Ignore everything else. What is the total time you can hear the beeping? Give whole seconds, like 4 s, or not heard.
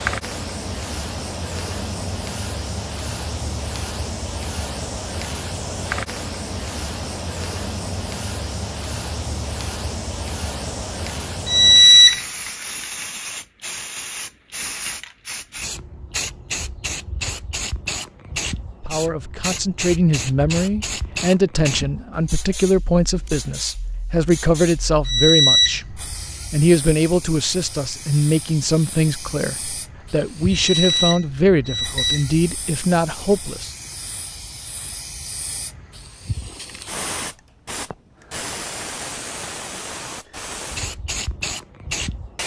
3 s.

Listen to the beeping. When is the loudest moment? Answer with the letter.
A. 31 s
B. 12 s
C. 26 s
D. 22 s
B.